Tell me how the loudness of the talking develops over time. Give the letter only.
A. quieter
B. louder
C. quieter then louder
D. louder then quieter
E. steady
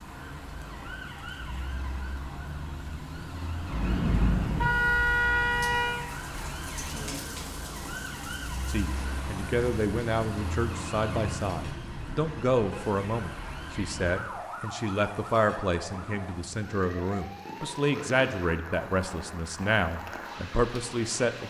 E.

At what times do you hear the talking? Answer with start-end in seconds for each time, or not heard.
8.7-21.4.